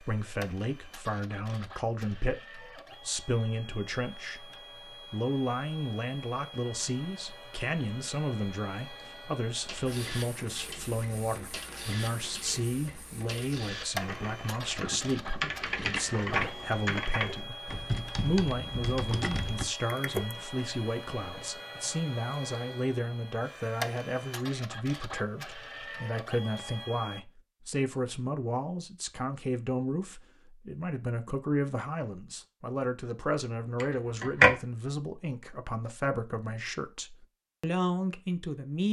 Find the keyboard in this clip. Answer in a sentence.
You can hear the keyboard from 9.7 to 20.4 s.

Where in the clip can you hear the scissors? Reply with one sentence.
The scissors can be heard from 14.8 to 16.2 s and from 33.8 to 34.5 s.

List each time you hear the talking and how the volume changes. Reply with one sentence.
You can hear the talking from 0.0 to 4.5 s, at a steady volume; and from 5.1 to 38.8 s, at a steady volume.